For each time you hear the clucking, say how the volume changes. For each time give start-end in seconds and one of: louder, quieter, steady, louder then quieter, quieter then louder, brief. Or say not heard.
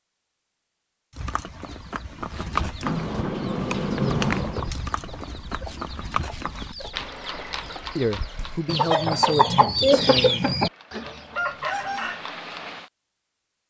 1.6-12.2 louder.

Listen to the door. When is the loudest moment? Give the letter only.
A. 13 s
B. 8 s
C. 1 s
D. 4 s
D.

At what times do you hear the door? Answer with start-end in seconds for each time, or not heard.
2.8-4.7.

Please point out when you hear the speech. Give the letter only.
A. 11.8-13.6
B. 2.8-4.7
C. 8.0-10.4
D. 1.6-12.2
C.